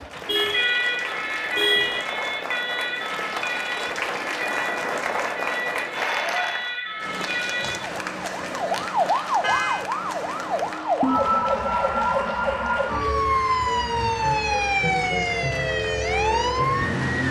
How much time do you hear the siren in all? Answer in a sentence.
You can hear the siren for 17 seconds altogether.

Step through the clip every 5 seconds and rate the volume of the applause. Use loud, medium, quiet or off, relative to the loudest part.
loud, loud, medium, medium.